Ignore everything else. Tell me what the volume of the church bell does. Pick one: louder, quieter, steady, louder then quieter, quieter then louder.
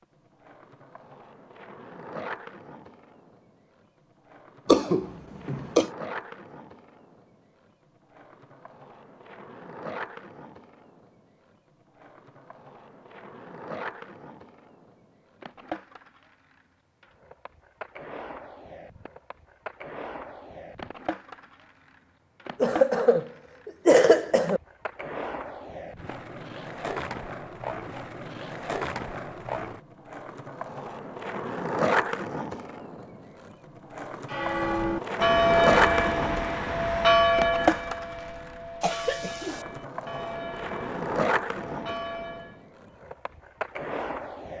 quieter.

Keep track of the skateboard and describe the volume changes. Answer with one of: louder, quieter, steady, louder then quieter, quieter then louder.
louder.